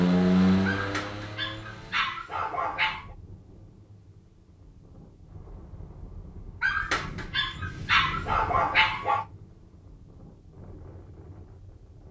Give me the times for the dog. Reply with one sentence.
The dog can be heard from 0.7 to 3.1 s and from 6.6 to 9.2 s.